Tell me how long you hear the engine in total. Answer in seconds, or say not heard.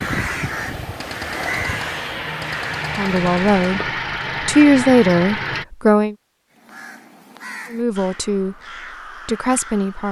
6 s.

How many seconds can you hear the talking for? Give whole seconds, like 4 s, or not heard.
4 s.